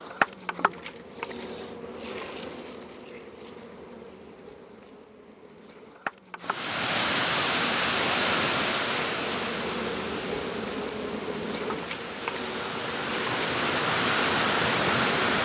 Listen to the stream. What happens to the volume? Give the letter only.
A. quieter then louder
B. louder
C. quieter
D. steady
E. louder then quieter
A.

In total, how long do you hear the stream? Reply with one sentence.
The stream can be heard for 9 seconds in total.